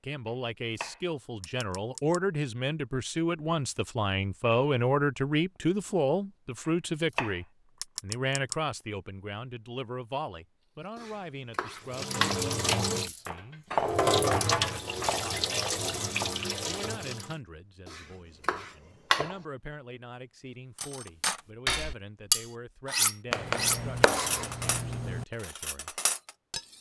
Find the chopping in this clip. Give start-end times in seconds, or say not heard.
0.2-2.2, 6.7-8.6, 10.9-12.4, 17.9-19.4, 23.3-25.2.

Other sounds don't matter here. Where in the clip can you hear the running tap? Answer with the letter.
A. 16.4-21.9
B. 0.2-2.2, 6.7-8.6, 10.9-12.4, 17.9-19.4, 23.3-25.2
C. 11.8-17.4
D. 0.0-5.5
C.